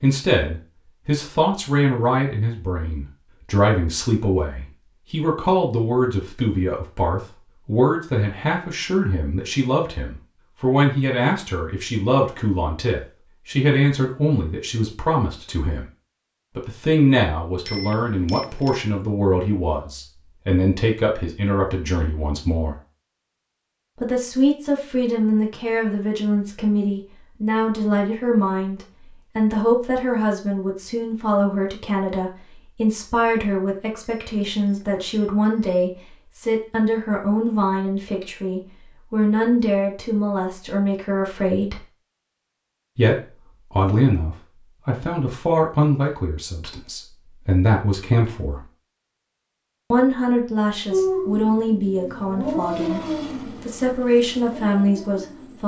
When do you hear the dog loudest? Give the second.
51 s.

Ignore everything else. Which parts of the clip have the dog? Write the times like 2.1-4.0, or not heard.
50.9-55.6.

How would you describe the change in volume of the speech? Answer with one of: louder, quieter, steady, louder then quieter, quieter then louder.
steady.